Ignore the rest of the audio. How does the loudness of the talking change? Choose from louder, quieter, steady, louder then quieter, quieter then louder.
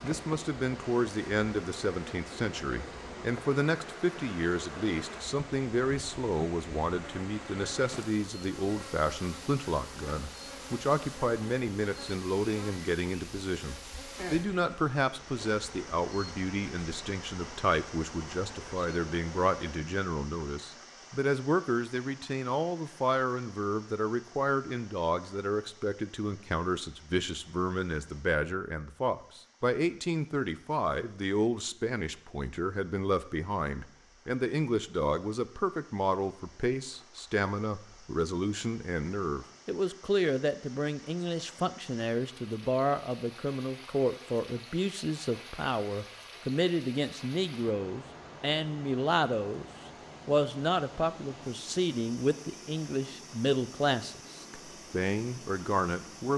steady.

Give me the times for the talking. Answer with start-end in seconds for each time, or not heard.
0.0-49.6, 50.2-56.3.